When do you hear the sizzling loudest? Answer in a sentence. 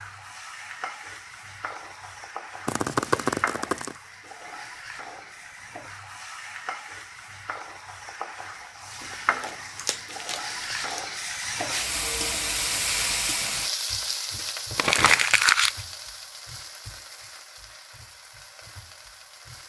The volume of the sizzling peaks at 13 seconds.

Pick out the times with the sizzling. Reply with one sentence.
You can hear the sizzling from 0.0 to 19.6 s.